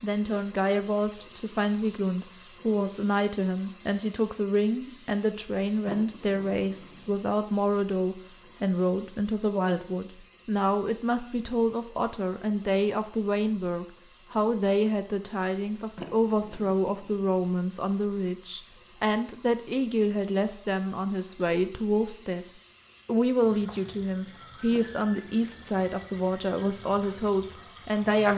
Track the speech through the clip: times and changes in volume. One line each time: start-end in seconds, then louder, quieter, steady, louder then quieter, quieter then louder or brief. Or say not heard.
0.0-22.4 steady
23.1-28.3 steady.